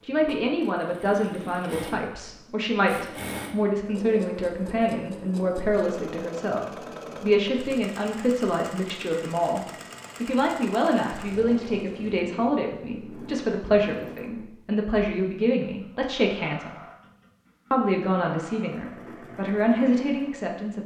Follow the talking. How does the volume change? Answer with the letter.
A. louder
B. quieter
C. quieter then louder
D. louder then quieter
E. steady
E.